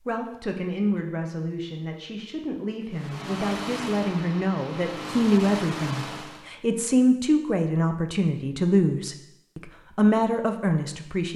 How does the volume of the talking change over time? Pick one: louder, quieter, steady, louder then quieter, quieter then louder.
louder.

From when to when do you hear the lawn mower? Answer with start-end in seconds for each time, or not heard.
2.9-6.5.